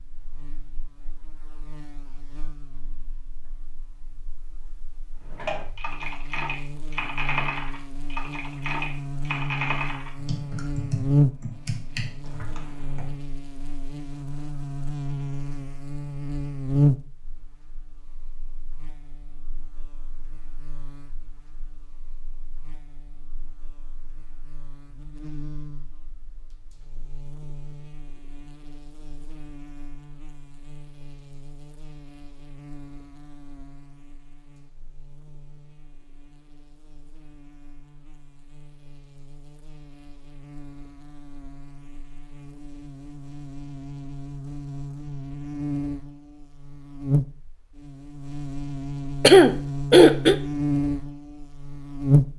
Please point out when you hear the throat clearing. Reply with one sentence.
The throat clearing can be heard from 49.2 to 50.4 s.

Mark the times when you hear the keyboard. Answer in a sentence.
The keyboard can be heard from 5.2 to 13.1 s.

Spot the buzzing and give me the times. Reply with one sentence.
You can hear the buzzing from 0.0 to 52.3 s.